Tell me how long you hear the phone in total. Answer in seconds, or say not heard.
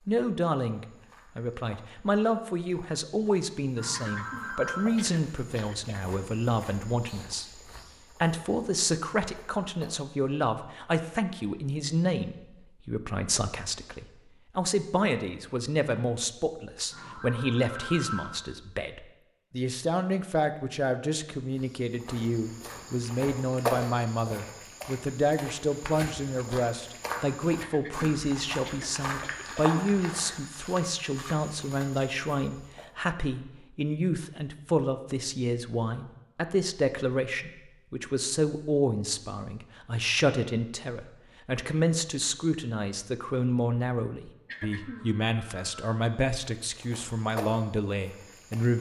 4 s.